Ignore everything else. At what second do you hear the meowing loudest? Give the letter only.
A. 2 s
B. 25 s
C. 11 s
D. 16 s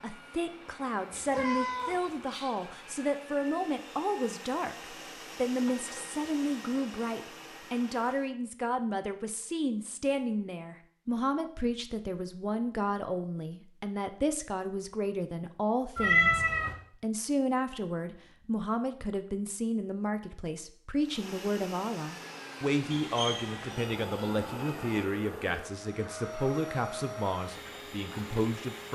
D.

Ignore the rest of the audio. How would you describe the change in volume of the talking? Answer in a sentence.
The loudness of the talking stays about the same.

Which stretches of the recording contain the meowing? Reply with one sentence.
The meowing can be heard from 1.1 to 2.5 s, from 15.9 to 16.8 s and from 22.9 to 25.0 s.